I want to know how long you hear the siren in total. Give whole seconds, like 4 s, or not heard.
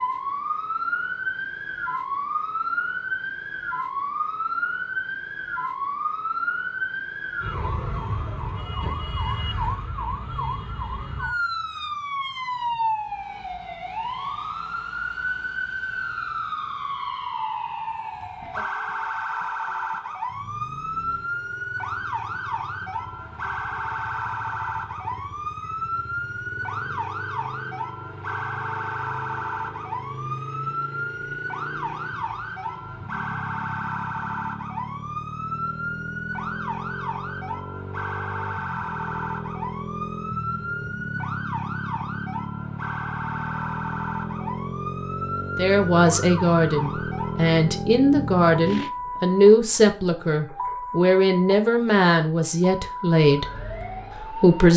55 s.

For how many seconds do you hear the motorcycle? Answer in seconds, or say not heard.
29 s.